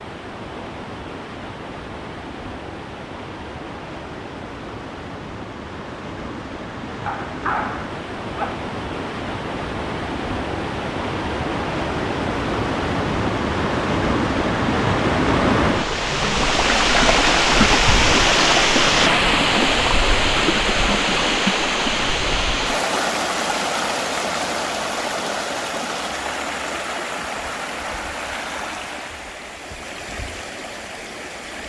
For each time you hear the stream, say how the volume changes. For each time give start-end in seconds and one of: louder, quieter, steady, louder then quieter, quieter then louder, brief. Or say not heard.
0.0-31.6 louder then quieter.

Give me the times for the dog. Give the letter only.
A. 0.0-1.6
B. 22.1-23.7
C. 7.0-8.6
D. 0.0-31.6
C.